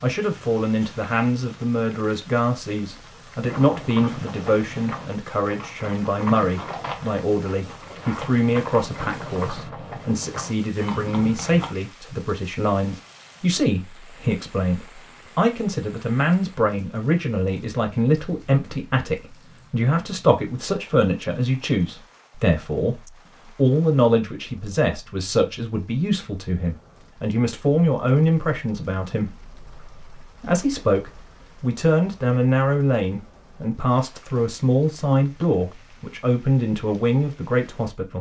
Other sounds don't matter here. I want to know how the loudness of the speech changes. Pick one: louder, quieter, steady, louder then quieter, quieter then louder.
steady.